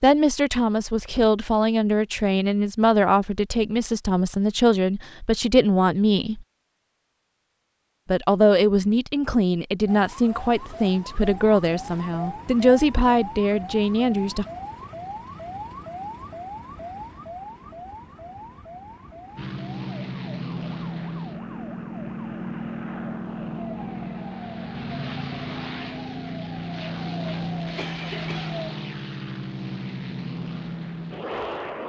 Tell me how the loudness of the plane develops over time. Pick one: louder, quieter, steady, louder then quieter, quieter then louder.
steady.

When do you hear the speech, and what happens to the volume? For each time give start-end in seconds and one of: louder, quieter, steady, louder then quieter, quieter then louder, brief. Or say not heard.
0.0-6.5 steady
8.1-14.4 steady.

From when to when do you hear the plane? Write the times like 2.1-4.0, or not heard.
19.4-31.8.